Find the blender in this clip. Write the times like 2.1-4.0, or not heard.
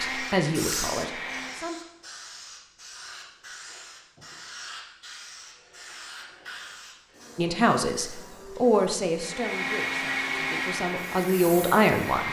0.0-1.8, 9.2-12.2.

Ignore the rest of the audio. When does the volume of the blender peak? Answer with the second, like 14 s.
10 s.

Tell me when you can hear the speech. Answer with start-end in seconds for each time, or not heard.
0.0-1.8, 7.3-12.2.